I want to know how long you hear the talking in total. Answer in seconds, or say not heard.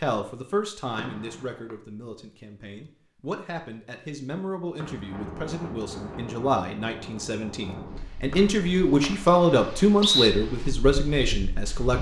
12 s.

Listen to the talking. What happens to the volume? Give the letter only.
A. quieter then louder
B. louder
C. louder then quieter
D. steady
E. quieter
B.